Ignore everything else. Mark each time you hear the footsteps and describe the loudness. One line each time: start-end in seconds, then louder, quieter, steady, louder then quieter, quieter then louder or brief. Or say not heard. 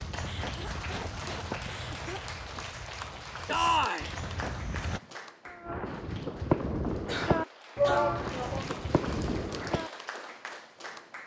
0.0-5.0 quieter then louder.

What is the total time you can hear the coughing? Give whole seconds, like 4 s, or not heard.
3 s.